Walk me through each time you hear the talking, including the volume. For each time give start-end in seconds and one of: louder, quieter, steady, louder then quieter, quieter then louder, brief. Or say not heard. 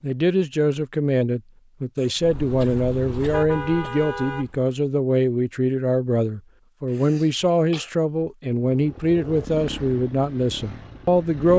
0.0-11.5 steady.